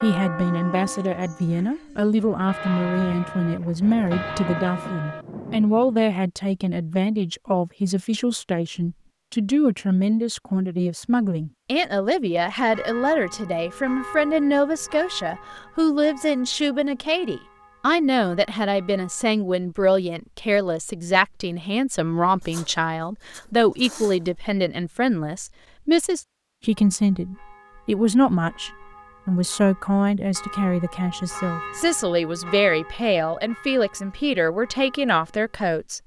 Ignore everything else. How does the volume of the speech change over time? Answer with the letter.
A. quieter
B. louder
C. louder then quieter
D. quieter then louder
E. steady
E.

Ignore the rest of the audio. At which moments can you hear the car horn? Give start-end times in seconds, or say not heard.
not heard.